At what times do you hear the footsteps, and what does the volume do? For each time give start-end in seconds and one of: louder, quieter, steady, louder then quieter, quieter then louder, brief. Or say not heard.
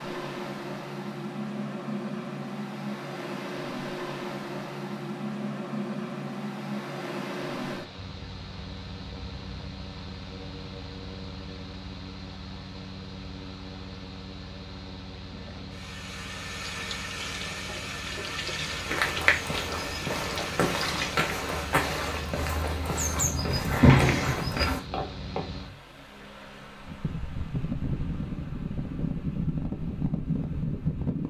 18.6-25.4 steady.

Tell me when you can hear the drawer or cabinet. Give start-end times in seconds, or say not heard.
23.7-24.5.